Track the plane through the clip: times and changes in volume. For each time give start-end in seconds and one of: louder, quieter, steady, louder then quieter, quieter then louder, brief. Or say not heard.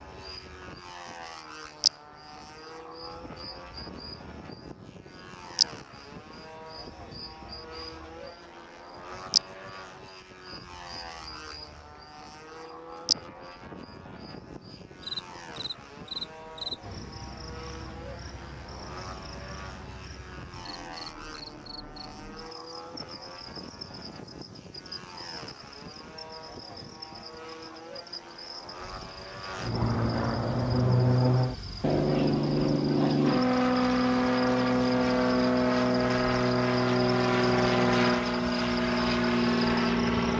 0.0-40.3 louder.